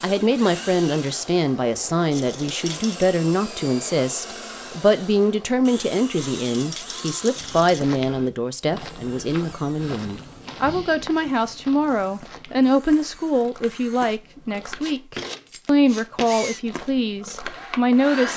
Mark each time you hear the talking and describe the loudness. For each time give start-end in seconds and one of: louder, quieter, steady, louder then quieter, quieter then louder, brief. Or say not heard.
0.0-18.3 steady.